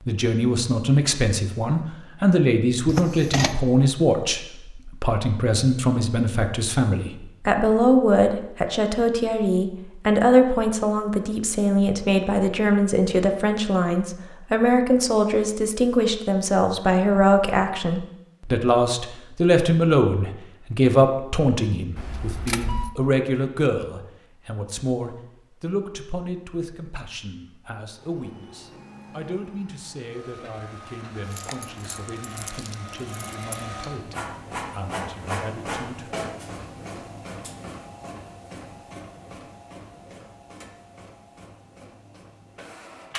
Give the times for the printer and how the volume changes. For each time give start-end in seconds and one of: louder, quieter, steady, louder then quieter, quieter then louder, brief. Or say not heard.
27.9-43.1 louder then quieter.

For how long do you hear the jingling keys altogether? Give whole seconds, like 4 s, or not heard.
4 s.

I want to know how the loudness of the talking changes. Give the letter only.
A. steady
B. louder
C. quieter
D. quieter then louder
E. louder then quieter
C.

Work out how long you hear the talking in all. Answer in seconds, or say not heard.
36 s.